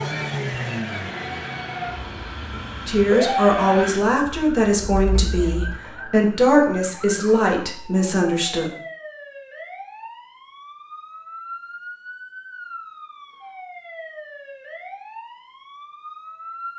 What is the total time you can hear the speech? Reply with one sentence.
The speech can be heard for 6 seconds in total.